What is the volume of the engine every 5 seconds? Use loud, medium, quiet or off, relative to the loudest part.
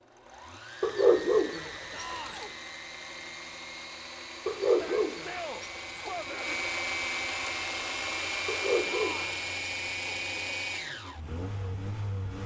medium, loud, loud.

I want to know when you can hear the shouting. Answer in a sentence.
The shouting can be heard from 1.9 to 2.5 s, from 4.7 to 6.5 s and from 8.8 to 9.4 s.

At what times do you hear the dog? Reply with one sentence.
You can hear the dog from 0.8 to 2.5 s, from 4.5 to 6.5 s and from 8.4 to 10.6 s.